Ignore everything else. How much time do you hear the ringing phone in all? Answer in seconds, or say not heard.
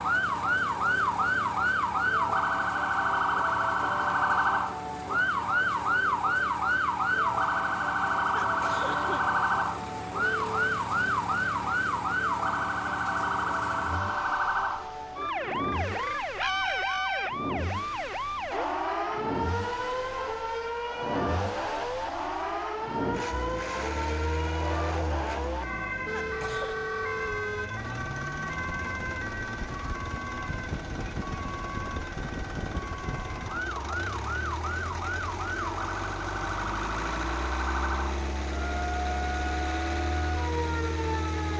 2 s.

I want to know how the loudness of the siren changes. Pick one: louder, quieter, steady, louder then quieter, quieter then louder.
quieter.